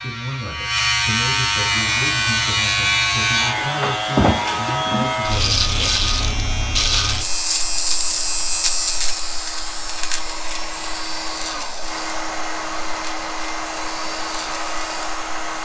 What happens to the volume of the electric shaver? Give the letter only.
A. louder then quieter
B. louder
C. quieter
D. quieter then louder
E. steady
C.